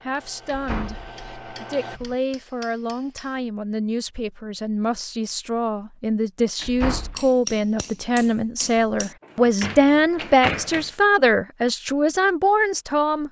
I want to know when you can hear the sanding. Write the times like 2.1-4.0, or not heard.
0.0-2.0.